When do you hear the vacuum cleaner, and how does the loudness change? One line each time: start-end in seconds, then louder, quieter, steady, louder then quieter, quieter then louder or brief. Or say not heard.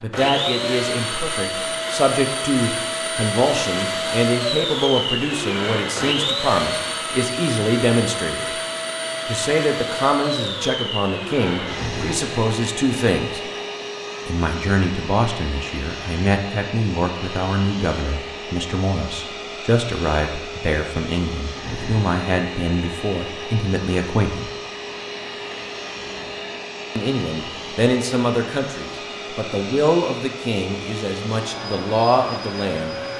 0.0-33.1 quieter.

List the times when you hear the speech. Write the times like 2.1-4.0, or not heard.
0.0-8.4, 9.2-13.4, 14.2-24.5, 26.9-33.0.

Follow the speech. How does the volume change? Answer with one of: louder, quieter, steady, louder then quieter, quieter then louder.
steady.